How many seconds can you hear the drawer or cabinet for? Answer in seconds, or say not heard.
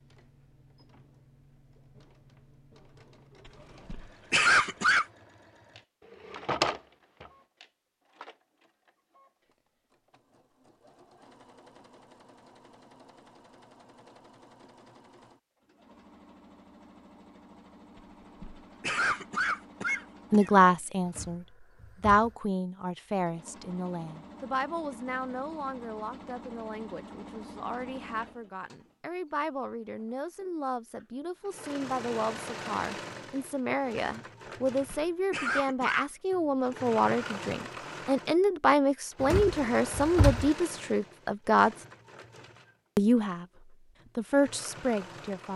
3 s.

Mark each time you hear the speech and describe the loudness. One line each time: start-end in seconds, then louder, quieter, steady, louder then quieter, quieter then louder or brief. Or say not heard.
20.3-41.8 quieter then louder
43.0-43.5 brief
44.1-45.5 brief.